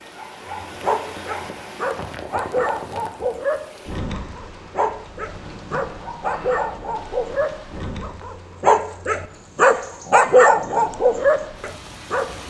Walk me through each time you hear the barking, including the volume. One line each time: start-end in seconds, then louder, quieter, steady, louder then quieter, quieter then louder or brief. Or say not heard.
0.5-12.3 louder.